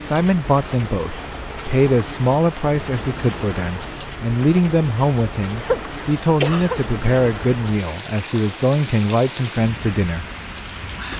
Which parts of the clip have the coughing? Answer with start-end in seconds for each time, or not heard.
5.6-6.8.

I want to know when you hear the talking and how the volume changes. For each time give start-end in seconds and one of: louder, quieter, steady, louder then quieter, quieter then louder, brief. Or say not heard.
0.0-10.2 steady.